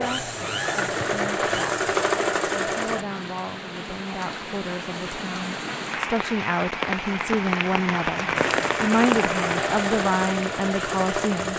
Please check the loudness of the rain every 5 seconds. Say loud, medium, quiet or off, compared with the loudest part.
medium, loud, medium.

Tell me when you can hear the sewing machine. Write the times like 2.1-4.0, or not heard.
0.0-3.0, 8.3-11.5.